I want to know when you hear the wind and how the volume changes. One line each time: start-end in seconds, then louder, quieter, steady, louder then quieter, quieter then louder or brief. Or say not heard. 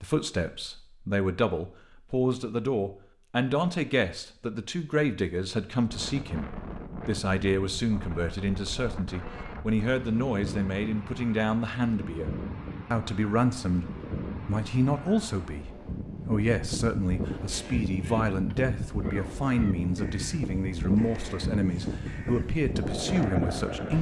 5.8-23.9 louder.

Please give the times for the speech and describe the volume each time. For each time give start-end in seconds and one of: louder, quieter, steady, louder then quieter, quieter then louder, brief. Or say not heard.
0.0-23.9 steady.